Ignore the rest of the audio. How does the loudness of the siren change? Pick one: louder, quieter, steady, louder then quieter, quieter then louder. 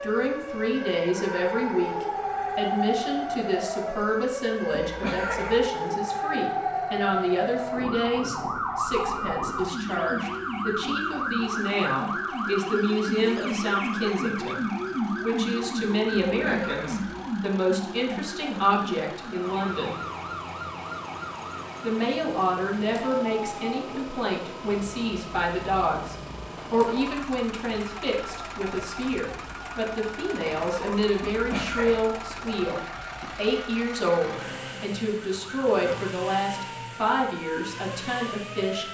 quieter.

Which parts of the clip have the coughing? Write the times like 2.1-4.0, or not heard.
4.7-5.7, 16.2-17.2, 31.2-32.0.